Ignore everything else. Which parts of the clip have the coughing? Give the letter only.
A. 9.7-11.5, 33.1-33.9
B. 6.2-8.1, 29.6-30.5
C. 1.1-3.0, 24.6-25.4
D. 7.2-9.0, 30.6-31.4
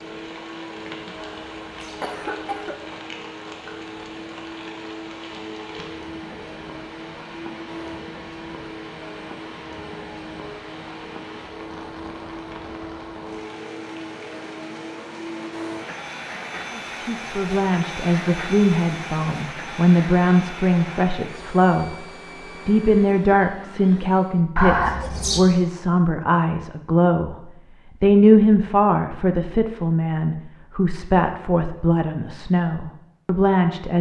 C.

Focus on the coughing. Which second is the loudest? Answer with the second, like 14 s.
25 s.